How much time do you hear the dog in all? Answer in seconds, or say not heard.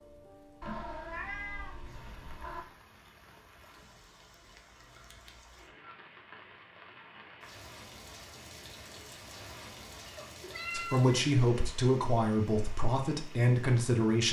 not heard.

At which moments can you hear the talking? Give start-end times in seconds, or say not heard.
10.7-14.2.